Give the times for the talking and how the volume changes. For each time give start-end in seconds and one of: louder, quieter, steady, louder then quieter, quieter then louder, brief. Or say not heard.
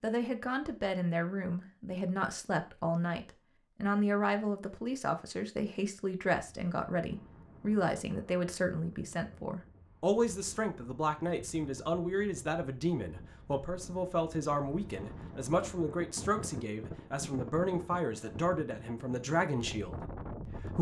0.0-20.7 steady.